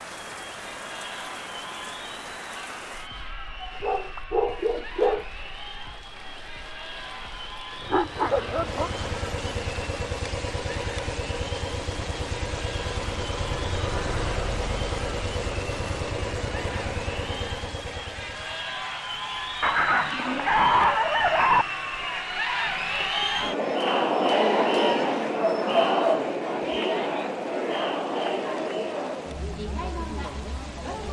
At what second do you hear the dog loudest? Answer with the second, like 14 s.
21 s.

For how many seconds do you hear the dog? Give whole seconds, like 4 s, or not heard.
6 s.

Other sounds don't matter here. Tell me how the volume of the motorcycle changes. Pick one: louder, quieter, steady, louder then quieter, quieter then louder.
steady.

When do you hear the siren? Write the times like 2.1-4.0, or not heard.
not heard.